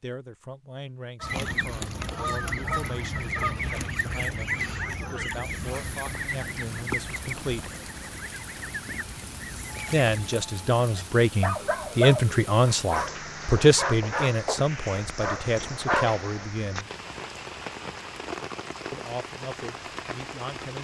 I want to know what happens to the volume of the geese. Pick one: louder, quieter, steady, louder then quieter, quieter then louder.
quieter.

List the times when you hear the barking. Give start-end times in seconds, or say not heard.
9.7-16.4.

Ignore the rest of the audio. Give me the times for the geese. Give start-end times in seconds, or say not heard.
1.2-10.2.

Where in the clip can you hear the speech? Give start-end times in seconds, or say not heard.
0.0-7.7, 9.9-16.9, 18.9-20.7.